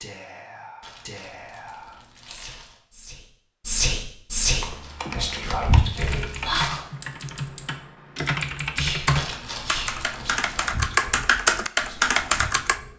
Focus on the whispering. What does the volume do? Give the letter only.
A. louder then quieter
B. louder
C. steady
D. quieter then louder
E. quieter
A.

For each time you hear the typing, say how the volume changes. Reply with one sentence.
You can hear the typing from 4.5 to 12.8 s, getting louder.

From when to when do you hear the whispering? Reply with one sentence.
You can hear the whispering from 0.0 to 6.7 s and from 8.8 to 12.9 s.